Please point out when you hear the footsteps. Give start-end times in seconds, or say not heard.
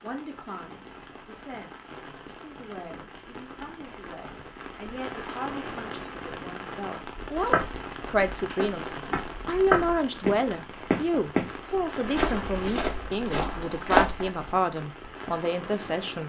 7.0-14.4.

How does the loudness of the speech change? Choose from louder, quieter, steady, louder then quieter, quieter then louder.
louder.